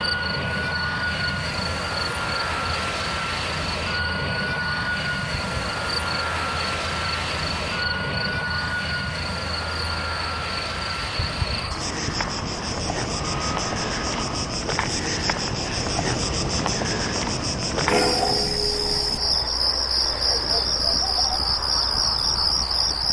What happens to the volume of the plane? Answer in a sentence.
The loudness of the plane goes down.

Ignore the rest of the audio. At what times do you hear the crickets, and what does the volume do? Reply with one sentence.
You can hear the crickets from 0.0 to 23.0 s, getting louder.